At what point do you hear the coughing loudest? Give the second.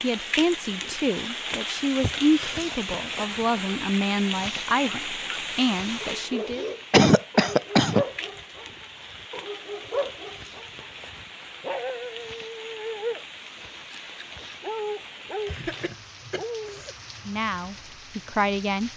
7 s.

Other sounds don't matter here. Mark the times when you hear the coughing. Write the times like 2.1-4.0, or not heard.
2.0-2.6, 6.9-8.1, 15.4-16.9.